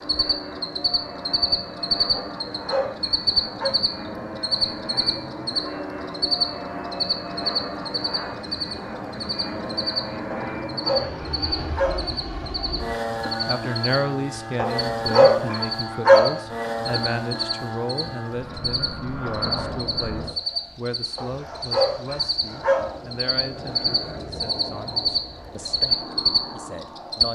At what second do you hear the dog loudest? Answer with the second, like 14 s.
16 s.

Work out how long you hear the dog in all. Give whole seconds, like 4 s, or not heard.
7 s.